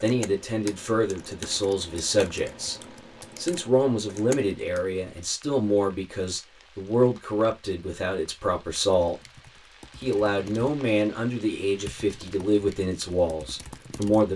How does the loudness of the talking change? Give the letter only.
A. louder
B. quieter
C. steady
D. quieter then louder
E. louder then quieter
C.